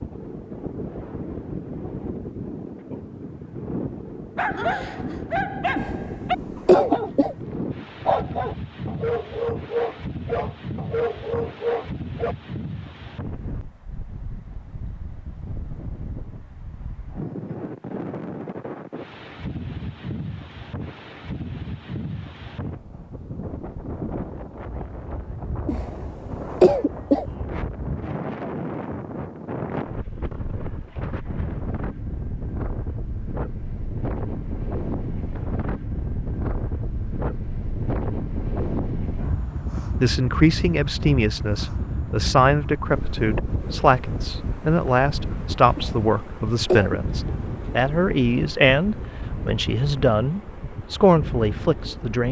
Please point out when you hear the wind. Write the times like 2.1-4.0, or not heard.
0.0-52.2.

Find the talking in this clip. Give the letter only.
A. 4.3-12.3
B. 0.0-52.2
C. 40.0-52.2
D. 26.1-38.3
C.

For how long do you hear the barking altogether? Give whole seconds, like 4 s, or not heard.
8 s.